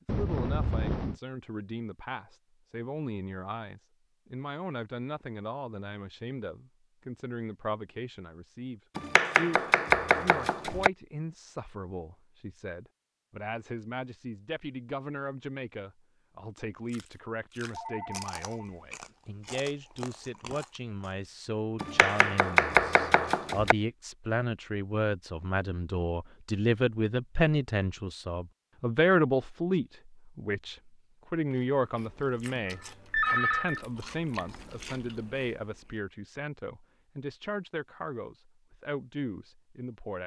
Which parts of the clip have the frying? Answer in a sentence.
You can't hear the frying here.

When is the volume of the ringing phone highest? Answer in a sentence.
The loudest moment of the ringing phone is at 33 seconds.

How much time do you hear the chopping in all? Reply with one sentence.
The chopping can be heard for 4 seconds in total.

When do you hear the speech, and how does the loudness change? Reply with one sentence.
You can hear the speech from 0.1 to 40.2 s, getting louder then quieter.